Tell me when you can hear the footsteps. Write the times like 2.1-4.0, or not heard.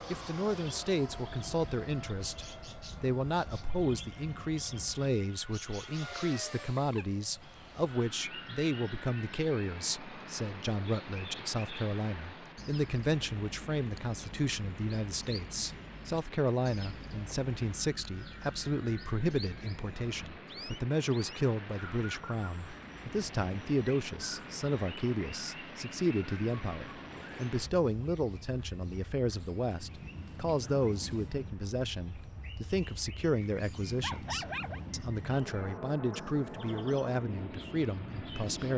not heard.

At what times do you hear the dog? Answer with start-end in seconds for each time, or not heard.
33.4-34.8.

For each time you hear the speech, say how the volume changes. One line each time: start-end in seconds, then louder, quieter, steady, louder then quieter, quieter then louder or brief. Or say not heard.
0.1-38.7 steady.